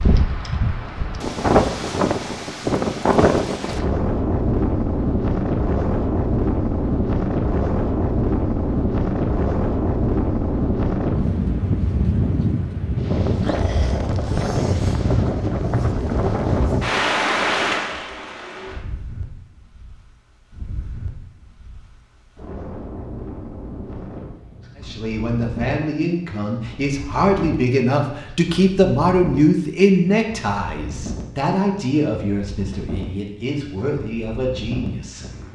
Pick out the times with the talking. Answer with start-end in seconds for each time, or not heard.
24.8-35.5.